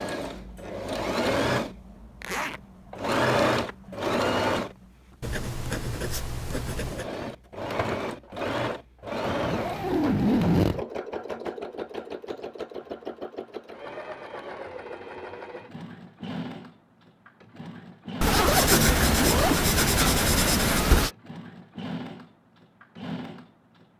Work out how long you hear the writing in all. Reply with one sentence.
The writing can be heard for 5 seconds in total.